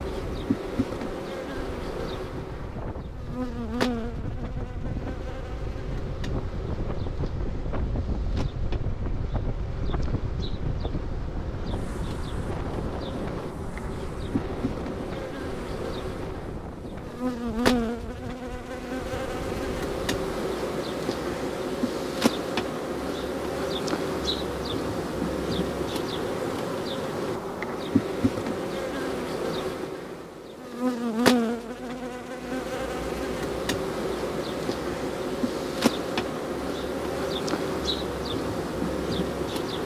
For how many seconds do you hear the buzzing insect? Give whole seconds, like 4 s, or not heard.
40 s.